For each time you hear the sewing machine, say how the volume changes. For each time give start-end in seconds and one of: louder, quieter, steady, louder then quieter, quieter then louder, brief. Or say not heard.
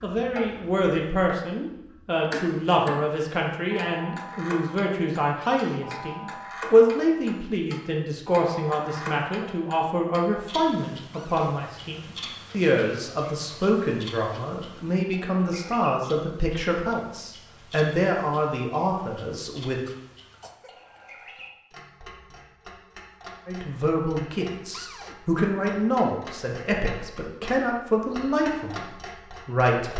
not heard.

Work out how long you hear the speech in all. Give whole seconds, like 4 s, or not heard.
26 s.